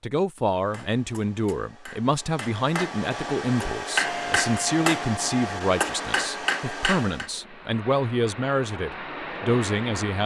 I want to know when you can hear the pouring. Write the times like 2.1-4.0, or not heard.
not heard.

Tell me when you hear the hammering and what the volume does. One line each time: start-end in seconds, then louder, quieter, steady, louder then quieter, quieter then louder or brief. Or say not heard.
0.5-7.3 louder.